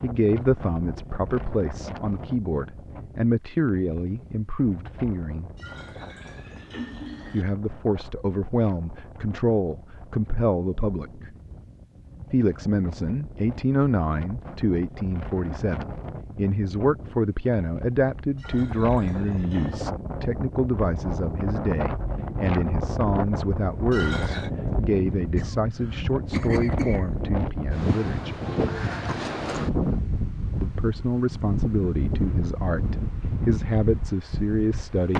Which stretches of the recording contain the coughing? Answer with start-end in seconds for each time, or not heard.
25.4-27.1.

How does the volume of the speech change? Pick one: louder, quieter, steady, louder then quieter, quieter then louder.
steady.